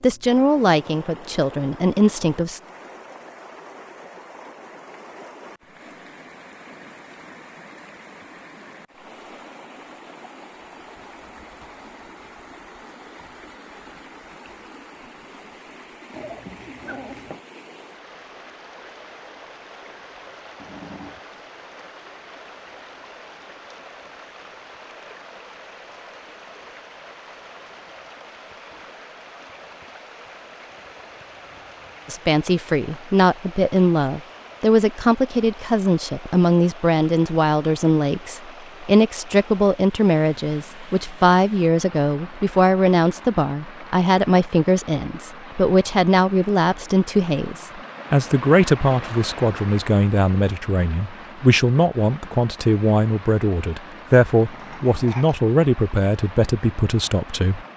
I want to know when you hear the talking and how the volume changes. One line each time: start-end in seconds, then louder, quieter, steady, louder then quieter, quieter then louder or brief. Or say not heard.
0.0-2.6 brief
32.0-57.6 steady.